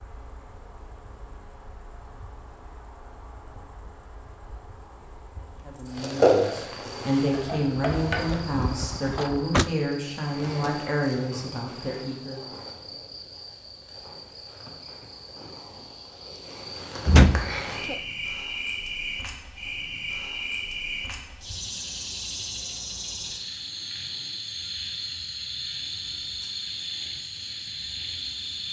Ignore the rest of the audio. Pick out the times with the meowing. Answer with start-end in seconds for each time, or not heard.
7.3-8.4.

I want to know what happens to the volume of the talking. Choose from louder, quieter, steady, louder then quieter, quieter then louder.
steady.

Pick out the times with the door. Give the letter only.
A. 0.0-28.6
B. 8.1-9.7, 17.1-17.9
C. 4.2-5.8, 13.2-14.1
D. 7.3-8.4
B.